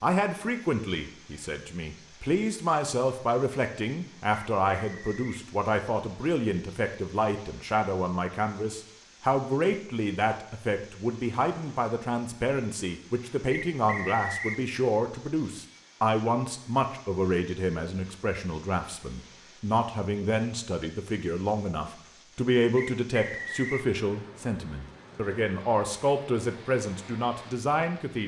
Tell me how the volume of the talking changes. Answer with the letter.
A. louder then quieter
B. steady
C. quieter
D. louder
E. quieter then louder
B.